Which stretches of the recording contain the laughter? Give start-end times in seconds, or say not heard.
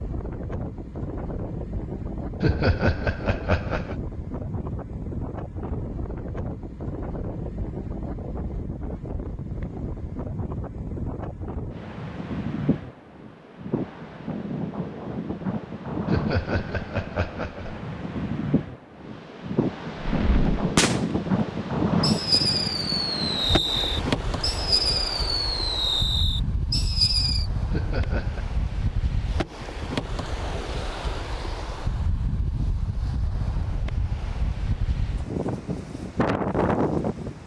2.4-4.0, 16.1-17.8, 27.7-28.4.